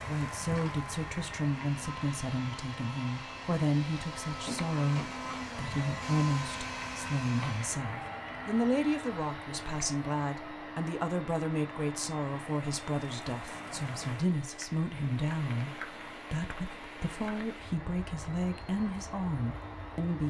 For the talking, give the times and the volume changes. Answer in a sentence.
You can hear the talking from 0.1 to 20.2 s, at a steady volume.